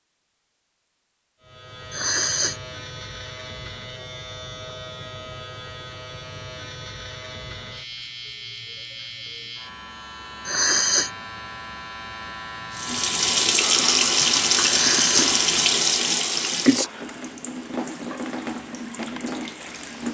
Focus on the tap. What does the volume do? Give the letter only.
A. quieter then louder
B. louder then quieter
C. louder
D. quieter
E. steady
D.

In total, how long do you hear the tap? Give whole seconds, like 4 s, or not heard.
7 s.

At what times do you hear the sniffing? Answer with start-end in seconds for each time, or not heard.
1.9-2.6, 10.4-11.1, 14.7-15.2.